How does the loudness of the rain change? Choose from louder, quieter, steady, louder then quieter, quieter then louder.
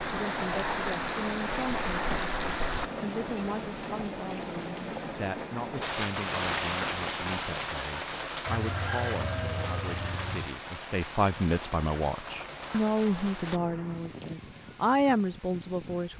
quieter.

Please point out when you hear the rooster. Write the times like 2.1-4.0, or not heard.
8.4-10.5.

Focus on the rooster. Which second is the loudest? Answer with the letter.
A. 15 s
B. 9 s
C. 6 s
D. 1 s
B.